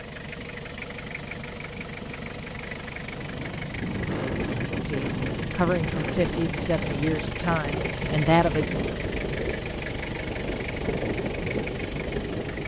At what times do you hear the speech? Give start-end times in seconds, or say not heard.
4.9-8.7.